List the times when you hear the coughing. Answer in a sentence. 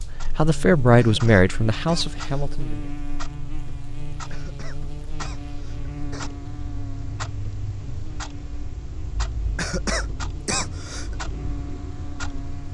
You can hear the coughing from 0.9 to 2.5 s, from 4.3 to 6.3 s and from 9.6 to 11.2 s.